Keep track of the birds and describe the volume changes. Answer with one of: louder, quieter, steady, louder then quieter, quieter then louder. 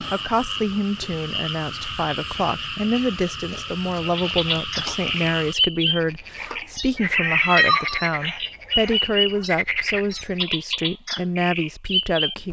steady.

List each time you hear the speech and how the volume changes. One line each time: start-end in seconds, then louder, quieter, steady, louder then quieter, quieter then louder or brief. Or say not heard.
0.0-12.4 steady.